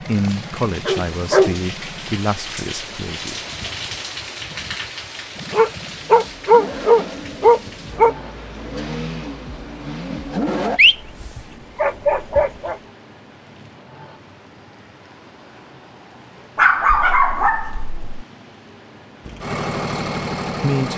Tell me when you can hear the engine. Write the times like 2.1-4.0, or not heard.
0.0-2.2, 5.3-10.8, 19.2-20.9.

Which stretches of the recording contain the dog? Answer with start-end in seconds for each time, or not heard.
0.8-1.6, 5.5-8.2, 10.8-12.8, 16.6-18.1.